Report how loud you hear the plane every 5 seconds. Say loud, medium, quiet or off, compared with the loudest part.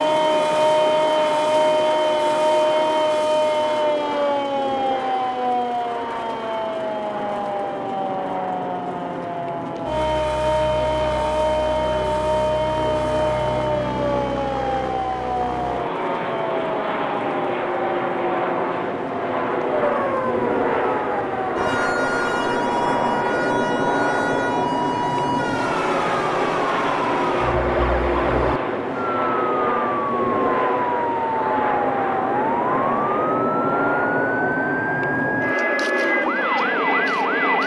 medium, medium, medium, loud, loud, loud, loud, loud.